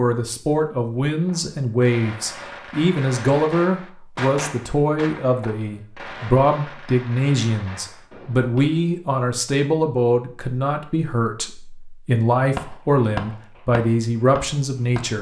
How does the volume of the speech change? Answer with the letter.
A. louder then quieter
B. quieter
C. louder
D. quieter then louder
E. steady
E.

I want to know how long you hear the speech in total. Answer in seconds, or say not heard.
15 s.